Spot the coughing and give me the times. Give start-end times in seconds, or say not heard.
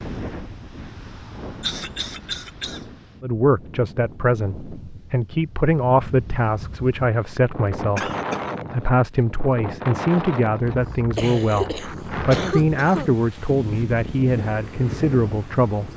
1.6-2.9, 8.0-8.5, 11.2-13.2.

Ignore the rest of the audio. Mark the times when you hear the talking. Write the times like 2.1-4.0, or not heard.
3.2-8.1, 8.7-15.9.